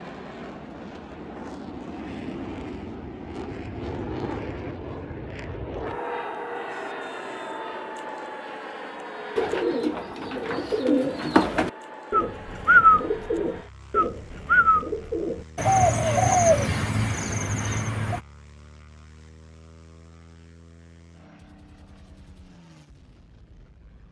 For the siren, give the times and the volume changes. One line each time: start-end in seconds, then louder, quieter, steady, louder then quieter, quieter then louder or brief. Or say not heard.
not heard.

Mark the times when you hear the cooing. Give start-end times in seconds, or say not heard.
9.3-18.2.